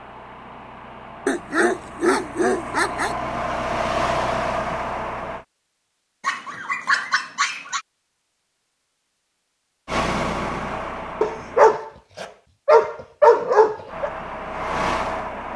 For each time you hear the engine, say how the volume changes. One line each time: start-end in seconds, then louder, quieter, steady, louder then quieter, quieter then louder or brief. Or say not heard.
0.0-5.5 louder
9.8-11.8 brief
13.8-15.5 brief.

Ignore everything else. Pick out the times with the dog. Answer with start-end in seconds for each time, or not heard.
1.2-3.1, 6.2-7.8, 11.2-14.1.